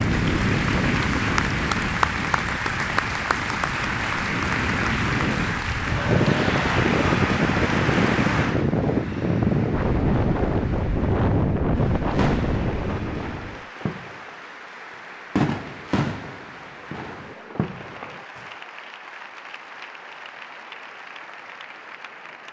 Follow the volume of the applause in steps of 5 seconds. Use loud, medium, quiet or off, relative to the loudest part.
loud, loud, quiet, quiet, quiet.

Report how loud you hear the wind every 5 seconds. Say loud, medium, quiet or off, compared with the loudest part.
medium, loud, loud, off, off.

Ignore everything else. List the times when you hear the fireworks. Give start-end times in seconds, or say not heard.
11.7-18.4.